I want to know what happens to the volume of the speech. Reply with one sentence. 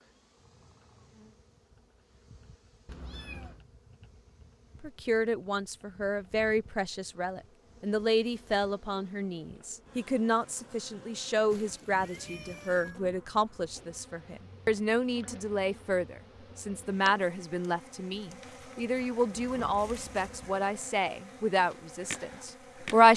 The loudness of the speech stays about the same.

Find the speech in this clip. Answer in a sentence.
The speech can be heard from 4.8 to 23.1 s.